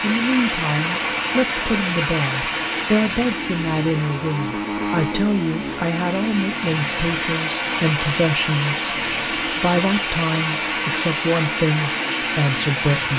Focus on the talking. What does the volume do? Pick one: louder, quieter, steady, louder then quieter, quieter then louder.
steady.